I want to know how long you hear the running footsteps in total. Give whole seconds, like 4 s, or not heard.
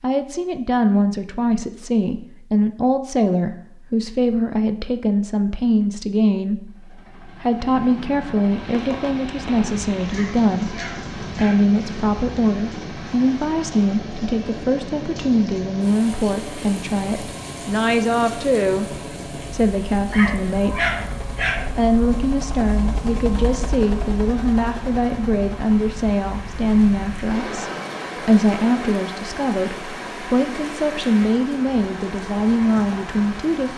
not heard.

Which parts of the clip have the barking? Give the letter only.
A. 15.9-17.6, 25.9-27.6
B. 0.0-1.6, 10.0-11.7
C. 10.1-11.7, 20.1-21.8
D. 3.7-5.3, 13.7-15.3
C.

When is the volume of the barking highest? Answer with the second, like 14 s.
21 s.